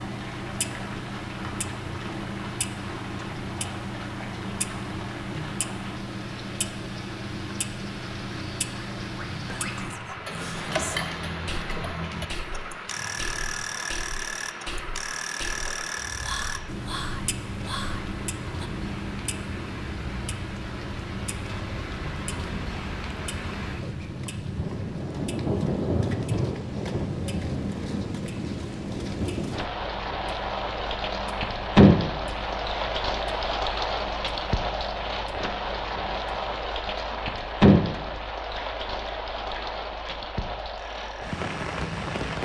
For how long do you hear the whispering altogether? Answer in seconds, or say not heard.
9 s.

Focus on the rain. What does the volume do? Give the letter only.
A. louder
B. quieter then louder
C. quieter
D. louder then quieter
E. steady
A.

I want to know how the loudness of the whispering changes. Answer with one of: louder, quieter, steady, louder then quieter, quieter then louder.
steady.